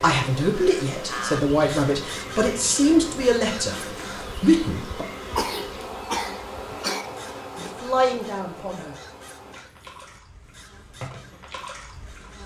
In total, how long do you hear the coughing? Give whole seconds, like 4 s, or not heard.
2 s.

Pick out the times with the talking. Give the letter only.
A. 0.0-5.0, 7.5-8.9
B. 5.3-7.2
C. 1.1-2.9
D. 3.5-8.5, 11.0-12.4
A.